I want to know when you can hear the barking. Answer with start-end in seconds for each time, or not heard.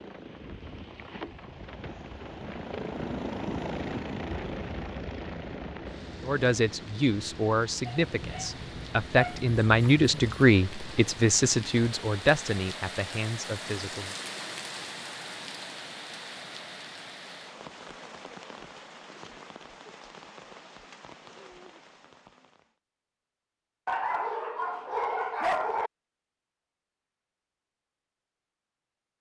7.8-10.3, 23.9-25.9.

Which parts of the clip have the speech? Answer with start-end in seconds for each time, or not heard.
6.2-14.2.